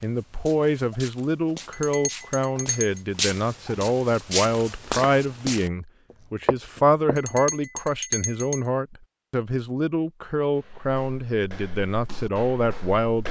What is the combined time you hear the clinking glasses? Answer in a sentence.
The clinking glasses can be heard for 3 seconds in total.